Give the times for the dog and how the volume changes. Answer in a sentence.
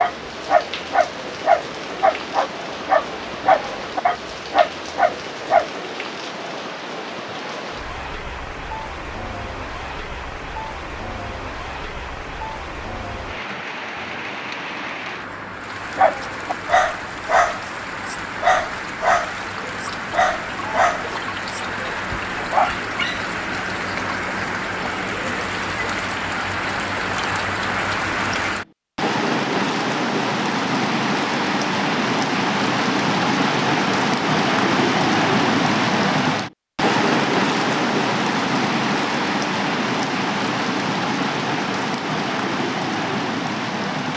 The dog can be heard from 0.0 to 5.7 s, at a steady volume; and from 15.9 to 23.2 s, at a steady volume.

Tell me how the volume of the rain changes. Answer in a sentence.
The volume of the rain goes up.